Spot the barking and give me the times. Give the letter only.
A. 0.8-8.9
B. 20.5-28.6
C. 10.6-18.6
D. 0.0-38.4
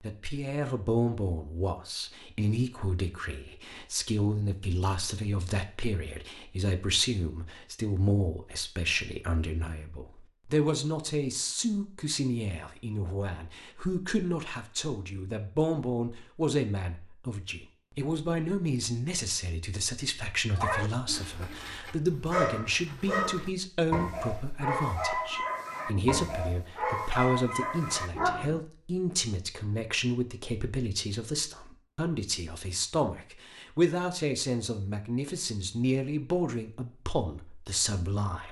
B.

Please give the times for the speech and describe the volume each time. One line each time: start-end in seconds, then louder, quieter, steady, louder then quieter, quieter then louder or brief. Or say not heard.
0.0-38.4 steady.